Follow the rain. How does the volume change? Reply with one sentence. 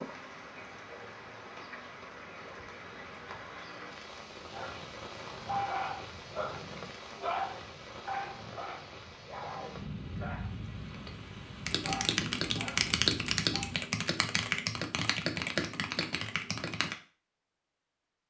The volume of the rain stays about the same.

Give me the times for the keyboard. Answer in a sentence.
You can hear the keyboard from 11.7 to 16.9 s.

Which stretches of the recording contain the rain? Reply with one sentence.
You can hear the rain from 0.0 to 13.9 s.